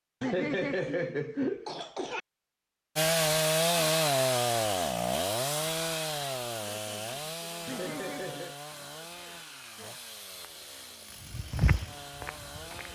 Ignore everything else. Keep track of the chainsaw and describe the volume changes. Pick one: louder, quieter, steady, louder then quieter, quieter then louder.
quieter.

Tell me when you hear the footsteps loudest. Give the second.
12 s.